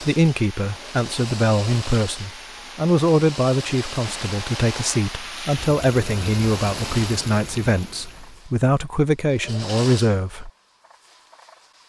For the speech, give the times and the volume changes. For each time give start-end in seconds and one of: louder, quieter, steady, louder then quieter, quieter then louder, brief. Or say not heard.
0.0-10.5 steady.